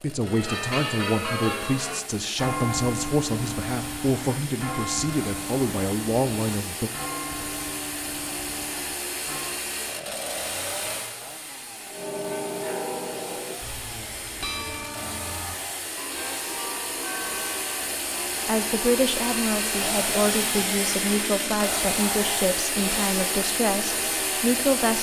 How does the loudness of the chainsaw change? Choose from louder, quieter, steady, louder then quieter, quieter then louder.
louder.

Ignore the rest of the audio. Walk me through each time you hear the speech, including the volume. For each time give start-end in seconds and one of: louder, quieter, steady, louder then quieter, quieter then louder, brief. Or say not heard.
0.0-6.9 steady
18.4-24.9 steady.